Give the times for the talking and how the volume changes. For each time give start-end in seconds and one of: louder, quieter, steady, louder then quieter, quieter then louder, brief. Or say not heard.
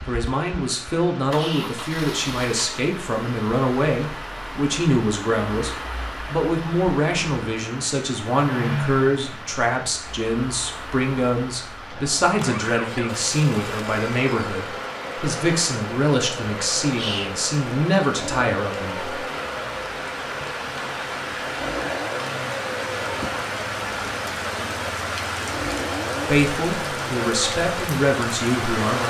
0.1-19.1 steady
26.2-29.0 brief.